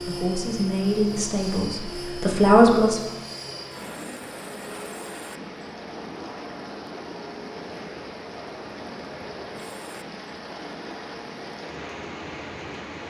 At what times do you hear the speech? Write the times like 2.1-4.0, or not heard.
0.0-3.1.